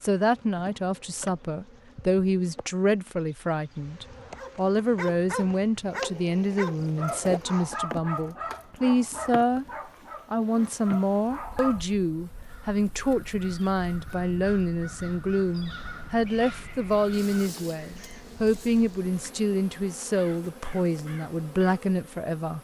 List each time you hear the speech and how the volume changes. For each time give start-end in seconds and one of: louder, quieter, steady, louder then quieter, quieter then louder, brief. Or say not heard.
0.0-9.7 steady
10.3-22.5 steady.